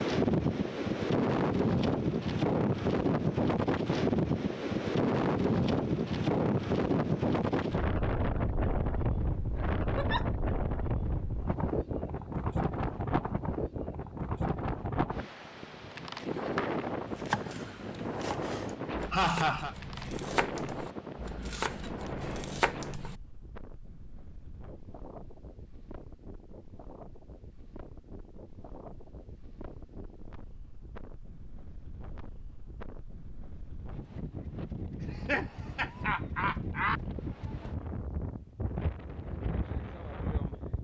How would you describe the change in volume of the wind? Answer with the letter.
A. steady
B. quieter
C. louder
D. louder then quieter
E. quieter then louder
E.